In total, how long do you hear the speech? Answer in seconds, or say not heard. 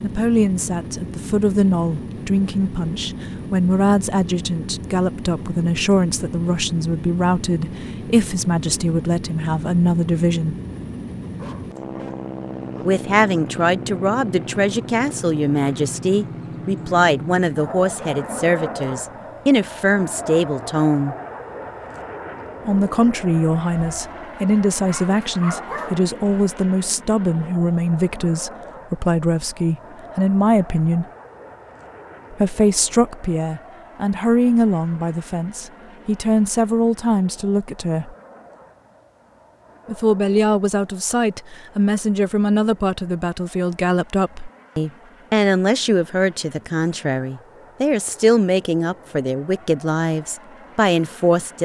45 s.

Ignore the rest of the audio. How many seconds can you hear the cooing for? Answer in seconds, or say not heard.
not heard.